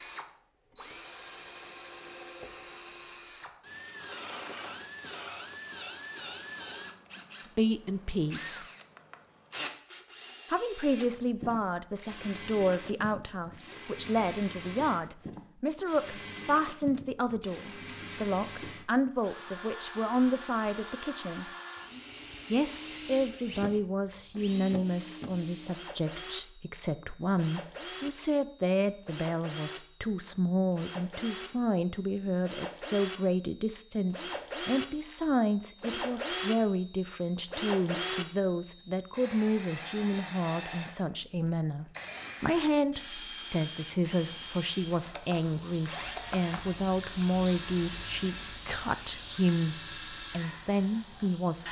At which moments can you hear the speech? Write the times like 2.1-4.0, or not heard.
7.5-8.7, 10.5-21.5, 22.5-51.6.